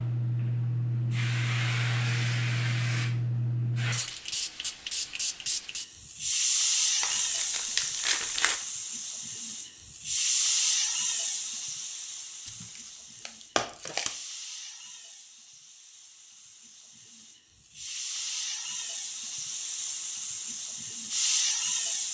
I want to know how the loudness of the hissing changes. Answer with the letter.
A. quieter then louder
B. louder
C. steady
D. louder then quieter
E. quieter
A.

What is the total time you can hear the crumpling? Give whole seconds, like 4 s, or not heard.
3 s.